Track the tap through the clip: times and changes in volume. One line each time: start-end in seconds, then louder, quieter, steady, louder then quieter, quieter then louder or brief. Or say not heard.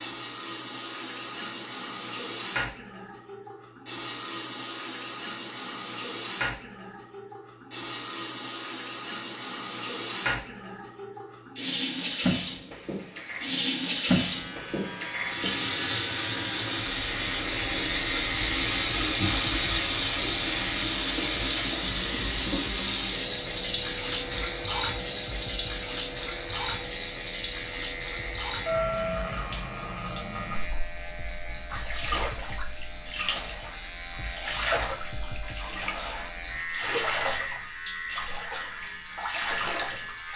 0.0-40.3 louder then quieter.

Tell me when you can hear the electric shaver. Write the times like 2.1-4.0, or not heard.
14.2-40.3.